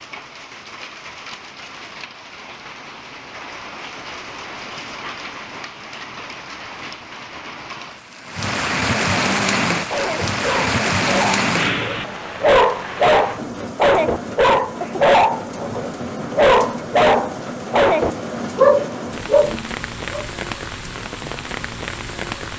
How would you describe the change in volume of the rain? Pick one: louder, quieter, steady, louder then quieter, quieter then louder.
louder then quieter.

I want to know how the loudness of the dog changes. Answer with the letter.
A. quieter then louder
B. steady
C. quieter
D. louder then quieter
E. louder
E.